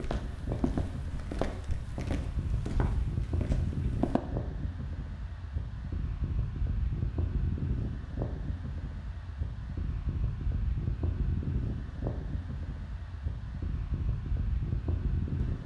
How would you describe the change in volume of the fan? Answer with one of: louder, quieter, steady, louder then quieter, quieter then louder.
steady.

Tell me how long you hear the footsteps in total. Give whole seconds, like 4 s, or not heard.
4 s.